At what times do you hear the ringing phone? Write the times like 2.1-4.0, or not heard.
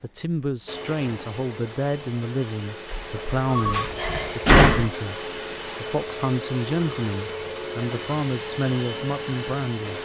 3.5-4.1.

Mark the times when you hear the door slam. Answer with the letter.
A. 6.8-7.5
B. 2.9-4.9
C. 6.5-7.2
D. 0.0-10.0
B.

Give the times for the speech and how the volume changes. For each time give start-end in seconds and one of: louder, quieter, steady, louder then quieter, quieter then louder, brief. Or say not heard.
0.0-10.0 steady.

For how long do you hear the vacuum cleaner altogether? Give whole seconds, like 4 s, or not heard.
10 s.